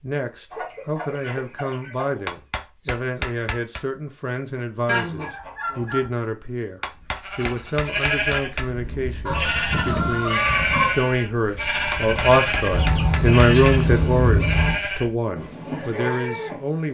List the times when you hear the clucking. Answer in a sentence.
You can hear the clucking from 0.5 to 2.2 s, from 4.8 to 6.1 s, from 9.2 to 10.9 s and from 12.7 to 14.8 s.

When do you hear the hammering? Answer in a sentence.
The hammering can be heard from 2.2 to 3.8 s, from 6.8 to 8.7 s and from 11.9 to 13.8 s.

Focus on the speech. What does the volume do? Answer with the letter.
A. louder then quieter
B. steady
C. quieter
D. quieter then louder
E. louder
E.